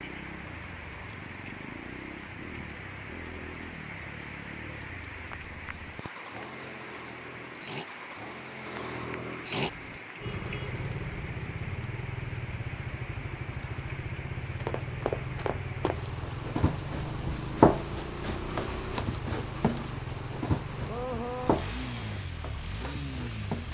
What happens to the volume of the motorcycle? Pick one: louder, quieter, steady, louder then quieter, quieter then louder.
louder.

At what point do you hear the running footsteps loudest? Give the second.
18 s.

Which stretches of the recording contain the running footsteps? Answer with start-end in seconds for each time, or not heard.
14.6-23.6.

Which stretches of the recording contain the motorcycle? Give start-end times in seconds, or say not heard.
0.0-23.6.